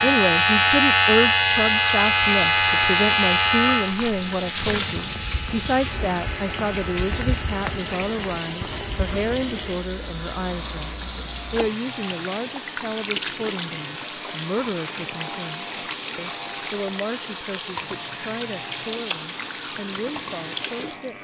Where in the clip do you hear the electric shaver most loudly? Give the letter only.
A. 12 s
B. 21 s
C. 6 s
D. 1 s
D.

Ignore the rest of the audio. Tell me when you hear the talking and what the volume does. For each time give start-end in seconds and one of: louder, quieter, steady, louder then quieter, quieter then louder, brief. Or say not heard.
0.0-21.1 quieter.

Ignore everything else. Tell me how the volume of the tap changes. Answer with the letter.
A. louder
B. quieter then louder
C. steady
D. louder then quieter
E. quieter
C.